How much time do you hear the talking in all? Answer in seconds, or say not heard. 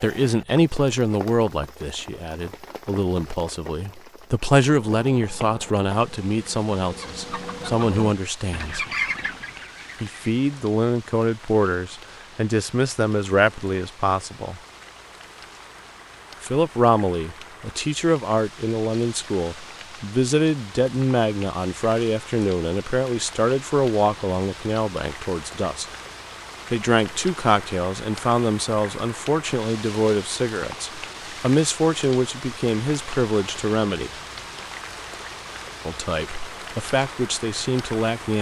33 s.